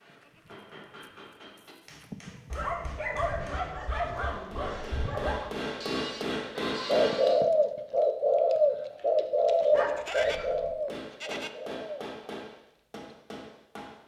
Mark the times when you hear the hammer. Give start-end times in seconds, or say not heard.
0.0-7.3, 10.8-14.0.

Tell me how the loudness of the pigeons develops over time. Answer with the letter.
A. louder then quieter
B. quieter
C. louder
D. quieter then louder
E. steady
B.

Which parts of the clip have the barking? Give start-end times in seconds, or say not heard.
2.5-5.5, 9.7-10.8.